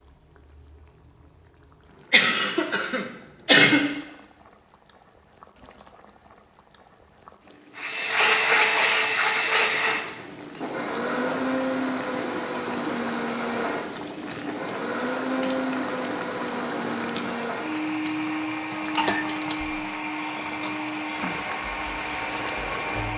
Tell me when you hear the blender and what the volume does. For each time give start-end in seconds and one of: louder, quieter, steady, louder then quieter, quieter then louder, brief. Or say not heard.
7.8-23.1 quieter.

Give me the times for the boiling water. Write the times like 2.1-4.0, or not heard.
0.0-23.1.